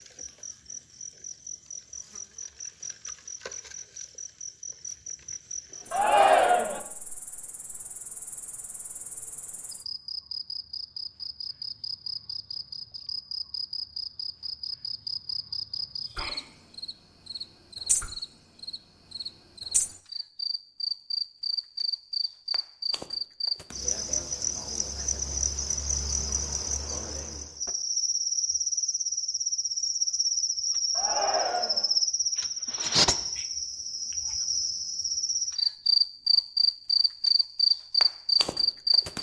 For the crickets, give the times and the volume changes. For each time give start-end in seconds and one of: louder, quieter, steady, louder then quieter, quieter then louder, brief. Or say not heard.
0.0-39.1 louder.